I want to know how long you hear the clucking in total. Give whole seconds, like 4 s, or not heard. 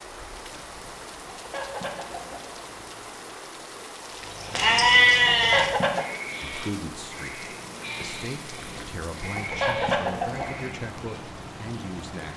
6 s.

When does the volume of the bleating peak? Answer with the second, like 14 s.
5 s.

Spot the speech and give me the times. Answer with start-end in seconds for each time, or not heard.
6.4-12.3.